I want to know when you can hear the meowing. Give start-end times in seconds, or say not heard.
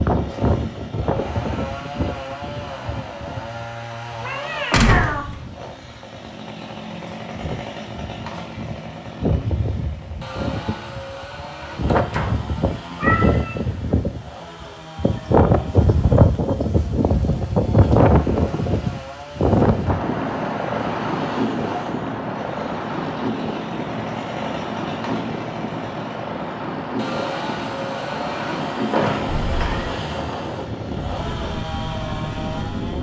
4.2-5.2, 12.9-14.0, 29.4-29.9.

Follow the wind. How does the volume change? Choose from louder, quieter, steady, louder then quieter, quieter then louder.
louder then quieter.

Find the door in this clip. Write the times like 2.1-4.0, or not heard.
4.7-5.3, 11.8-12.4, 28.9-29.4.